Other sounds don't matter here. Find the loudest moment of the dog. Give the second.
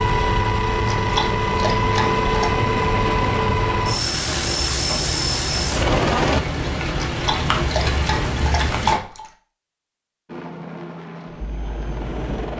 9 s.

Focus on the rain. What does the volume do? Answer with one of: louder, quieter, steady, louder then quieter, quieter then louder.
louder.